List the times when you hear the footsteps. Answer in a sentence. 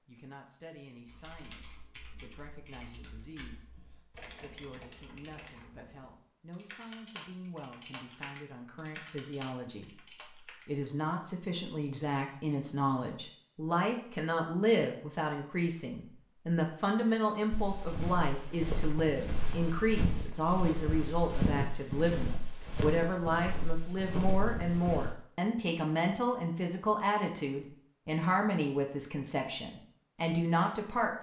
The footsteps can be heard from 17.5 to 25.1 s.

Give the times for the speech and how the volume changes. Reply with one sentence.
The speech can be heard from 0.1 to 31.1 s, getting louder.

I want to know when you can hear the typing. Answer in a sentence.
You can hear the typing from 1.1 to 10.7 s.